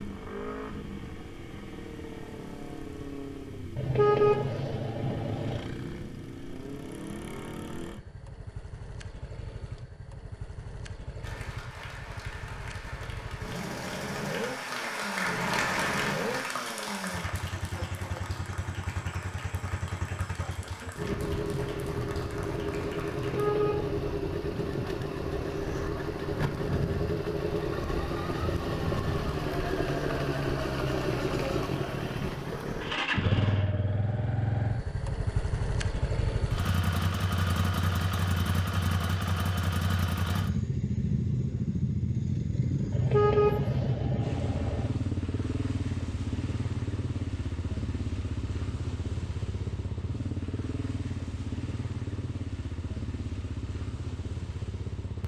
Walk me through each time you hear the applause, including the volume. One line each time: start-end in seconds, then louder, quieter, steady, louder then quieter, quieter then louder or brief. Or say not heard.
11.2-23.5 louder then quieter.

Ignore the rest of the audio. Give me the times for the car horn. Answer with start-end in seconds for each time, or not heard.
3.8-5.7, 23.1-24.1, 42.9-44.9.